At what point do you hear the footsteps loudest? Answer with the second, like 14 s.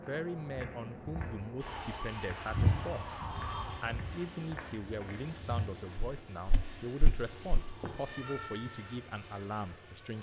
3 s.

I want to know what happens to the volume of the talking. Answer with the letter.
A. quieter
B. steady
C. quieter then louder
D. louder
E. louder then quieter
B.